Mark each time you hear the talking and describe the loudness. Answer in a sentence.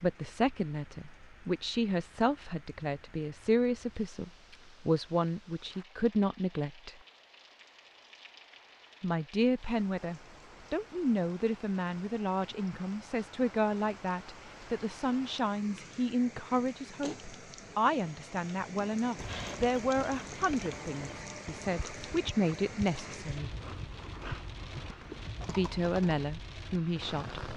The talking can be heard from 0.0 to 7.0 s, at a steady volume; from 9.0 to 23.6 s, at a steady volume; and briefly from 25.4 to 27.4 s.